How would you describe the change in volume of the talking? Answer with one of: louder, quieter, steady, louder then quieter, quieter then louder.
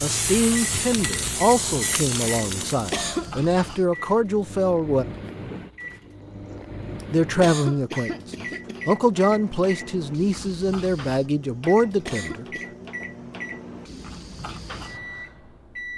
steady.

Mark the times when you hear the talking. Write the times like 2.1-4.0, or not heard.
0.0-5.0, 7.1-12.4.